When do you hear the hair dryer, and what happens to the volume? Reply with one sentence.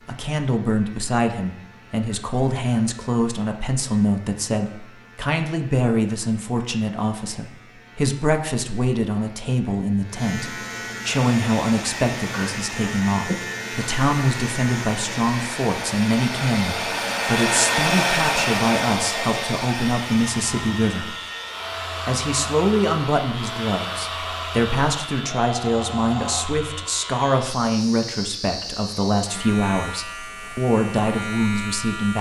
You can hear the hair dryer from 11.1 to 26.4 s, getting louder then quieter.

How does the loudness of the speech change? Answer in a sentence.
The volume of the speech stays about the same.